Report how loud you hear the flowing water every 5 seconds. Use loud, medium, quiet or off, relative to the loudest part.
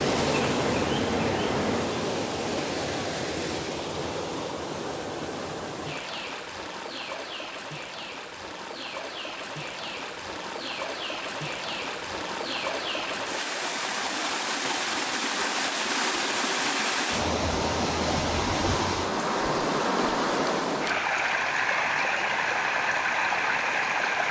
loud, medium, medium, loud, loud.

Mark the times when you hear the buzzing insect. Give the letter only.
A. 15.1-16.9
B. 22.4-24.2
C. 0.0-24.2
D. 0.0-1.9
D.